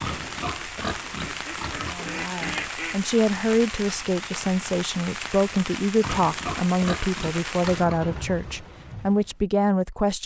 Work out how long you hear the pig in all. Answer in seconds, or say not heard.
5 s.